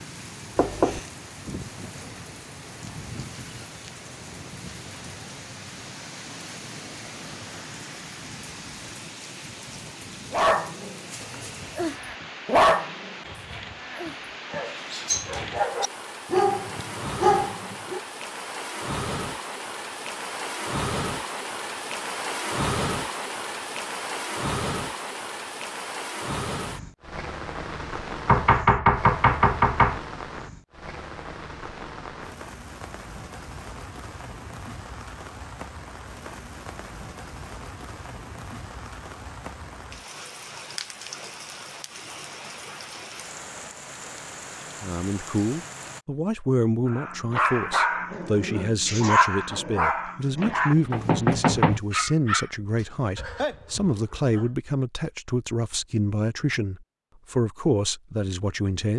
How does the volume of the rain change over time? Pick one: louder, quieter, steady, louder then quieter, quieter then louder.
louder then quieter.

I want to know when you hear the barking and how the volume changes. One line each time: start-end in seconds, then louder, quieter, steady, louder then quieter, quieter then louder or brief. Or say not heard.
10.3-10.9 brief
11.8-13.2 brief
13.9-18.0 louder
46.9-54.5 quieter.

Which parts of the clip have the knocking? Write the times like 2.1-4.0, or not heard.
0.6-1.0, 28.2-30.0, 50.4-51.8.